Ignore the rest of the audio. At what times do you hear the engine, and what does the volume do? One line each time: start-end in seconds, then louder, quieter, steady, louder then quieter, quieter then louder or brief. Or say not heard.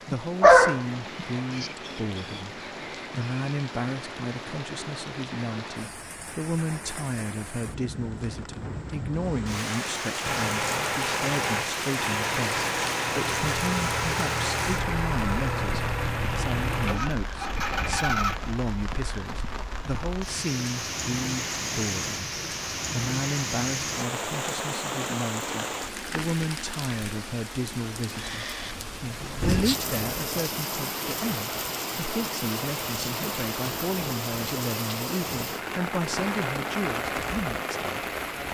10.2-18.6 steady.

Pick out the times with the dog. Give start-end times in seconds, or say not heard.
0.1-1.6.